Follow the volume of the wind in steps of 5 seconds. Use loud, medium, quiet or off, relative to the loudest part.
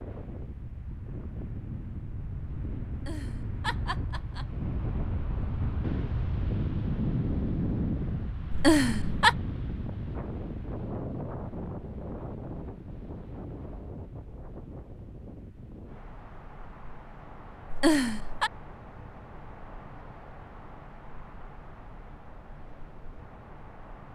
medium, loud, medium, quiet, quiet.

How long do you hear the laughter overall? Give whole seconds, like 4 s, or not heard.
3 s.